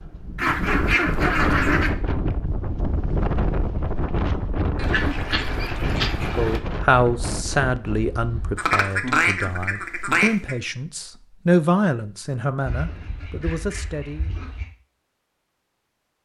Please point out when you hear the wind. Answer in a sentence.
You can hear the wind from 0.0 to 8.6 s.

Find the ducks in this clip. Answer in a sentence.
You can hear the ducks from 0.3 to 1.9 s, from 4.8 to 6.6 s, from 8.6 to 10.6 s and from 12.7 to 14.7 s.